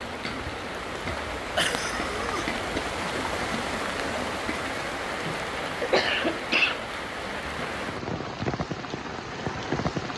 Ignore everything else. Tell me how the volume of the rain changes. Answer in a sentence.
The loudness of the rain stays about the same.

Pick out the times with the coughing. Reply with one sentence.
The coughing can be heard from 1.6 to 2.9 s and from 5.2 to 6.8 s.